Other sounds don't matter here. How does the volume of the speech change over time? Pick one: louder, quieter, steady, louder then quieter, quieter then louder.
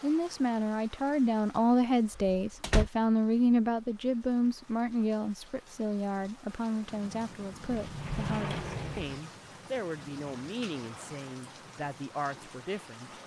quieter.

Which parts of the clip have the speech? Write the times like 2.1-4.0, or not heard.
0.0-13.2.